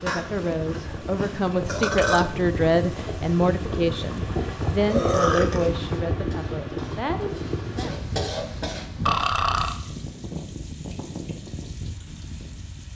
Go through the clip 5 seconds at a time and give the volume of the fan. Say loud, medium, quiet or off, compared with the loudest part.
loud, loud, medium.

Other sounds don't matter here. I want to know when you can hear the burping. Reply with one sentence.
You can hear the burping from 0.1 to 2.2 s, from 4.9 to 5.7 s and from 9.1 to 9.8 s.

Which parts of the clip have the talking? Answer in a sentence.
You can hear the talking from 0.0 to 8.0 s.